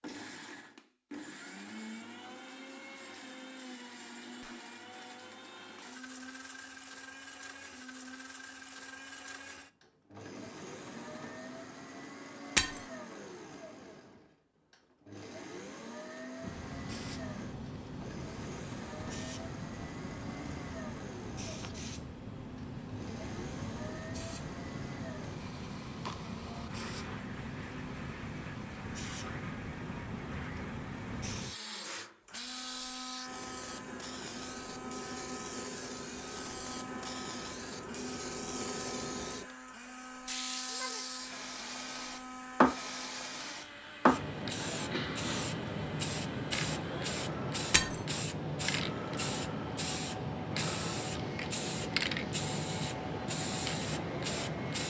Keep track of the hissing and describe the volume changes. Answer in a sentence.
The volume of the hissing goes up.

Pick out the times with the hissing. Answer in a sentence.
The hissing can be heard from 16.4 to 54.8 s.